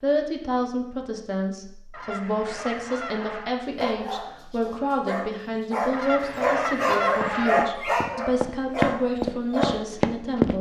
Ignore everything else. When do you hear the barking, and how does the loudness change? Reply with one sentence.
The barking can be heard from 3.7 to 9.8 s, getting louder.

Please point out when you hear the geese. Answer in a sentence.
You can hear the geese from 1.9 to 3.5 s and from 5.9 to 7.7 s.